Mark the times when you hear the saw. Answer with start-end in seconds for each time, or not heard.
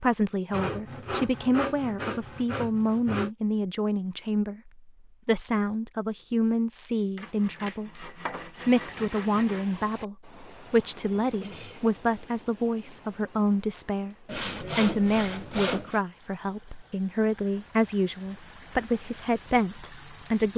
0.5-3.3, 7.2-9.7, 14.2-16.0.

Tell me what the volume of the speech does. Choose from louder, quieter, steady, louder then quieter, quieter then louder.
steady.